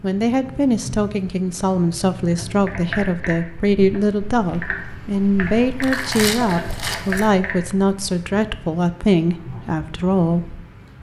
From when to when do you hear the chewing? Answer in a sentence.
You can hear the chewing from 5.8 to 7.3 s.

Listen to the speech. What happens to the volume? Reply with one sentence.
The volume of the speech stays about the same.